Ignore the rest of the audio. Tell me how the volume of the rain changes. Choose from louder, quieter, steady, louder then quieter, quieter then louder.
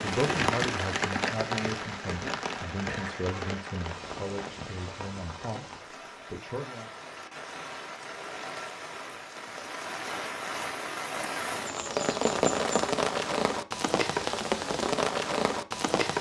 quieter then louder.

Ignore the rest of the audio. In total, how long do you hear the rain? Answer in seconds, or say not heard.
16 s.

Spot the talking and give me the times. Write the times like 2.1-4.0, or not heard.
0.0-6.9.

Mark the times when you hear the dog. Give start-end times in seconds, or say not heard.
not heard.